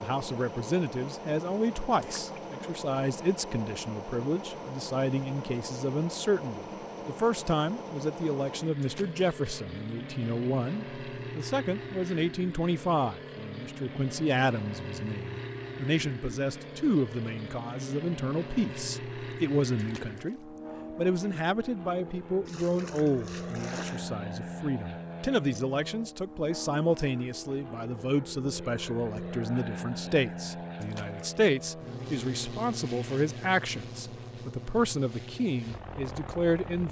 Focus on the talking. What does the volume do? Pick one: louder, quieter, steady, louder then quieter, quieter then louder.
steady.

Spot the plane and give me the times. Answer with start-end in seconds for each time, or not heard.
0.0-36.8.